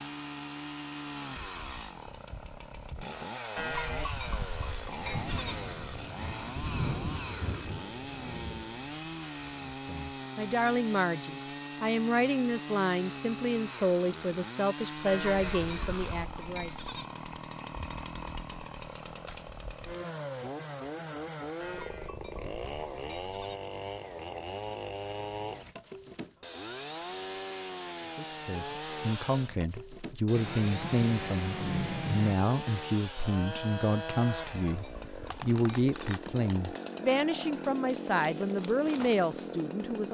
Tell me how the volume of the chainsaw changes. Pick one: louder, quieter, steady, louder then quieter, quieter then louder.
steady.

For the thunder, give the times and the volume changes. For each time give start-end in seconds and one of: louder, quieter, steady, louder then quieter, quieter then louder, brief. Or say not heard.
4.8-9.1 louder then quieter
30.3-32.4 brief.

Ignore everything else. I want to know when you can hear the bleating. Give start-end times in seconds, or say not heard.
3.5-5.5, 15.1-17.1, 21.6-23.6, 34.4-36.2.